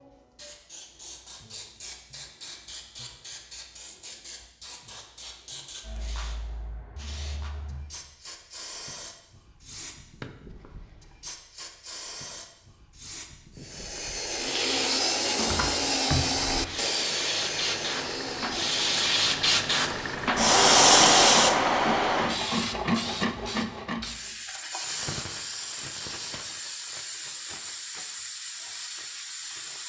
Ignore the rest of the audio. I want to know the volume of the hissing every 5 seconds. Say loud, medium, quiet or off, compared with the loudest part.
quiet, quiet, quiet, medium, loud, quiet.